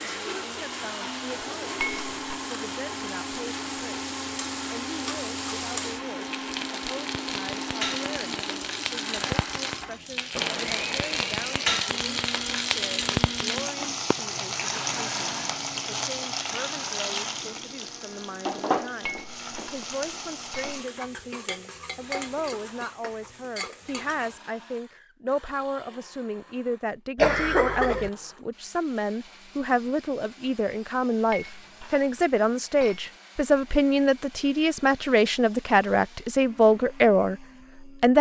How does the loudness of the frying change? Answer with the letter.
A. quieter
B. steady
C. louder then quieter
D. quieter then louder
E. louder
C.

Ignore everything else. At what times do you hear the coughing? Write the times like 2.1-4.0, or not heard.
27.1-28.1.